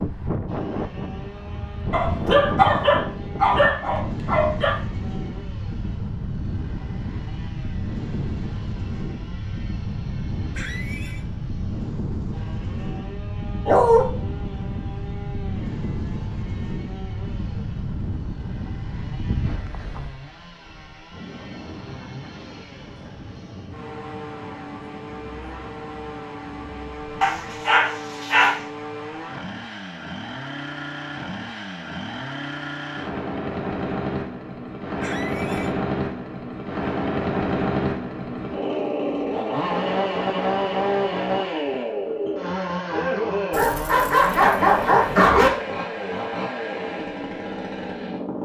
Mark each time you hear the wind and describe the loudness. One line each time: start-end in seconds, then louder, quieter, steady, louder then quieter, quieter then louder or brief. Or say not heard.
0.0-27.6 quieter.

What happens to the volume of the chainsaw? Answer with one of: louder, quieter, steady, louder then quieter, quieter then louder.
louder.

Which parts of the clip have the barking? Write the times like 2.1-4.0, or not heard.
1.9-4.8, 13.7-14.1, 27.2-28.6, 43.5-45.5.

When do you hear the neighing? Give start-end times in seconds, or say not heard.
10.6-11.2, 35.0-35.8.